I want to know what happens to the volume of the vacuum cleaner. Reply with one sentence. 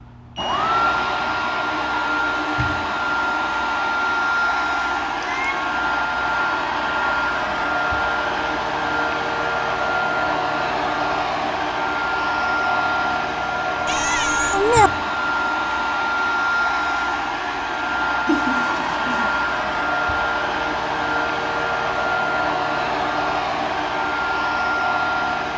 The loudness of the vacuum cleaner stays about the same.